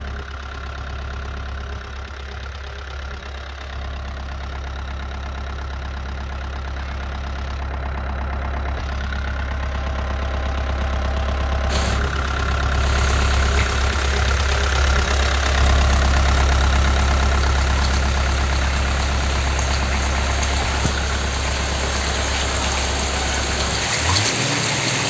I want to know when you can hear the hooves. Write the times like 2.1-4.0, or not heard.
not heard.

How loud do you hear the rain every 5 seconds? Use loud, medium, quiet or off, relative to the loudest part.
off, off, medium, medium, loud.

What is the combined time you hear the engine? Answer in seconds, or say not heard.
25 s.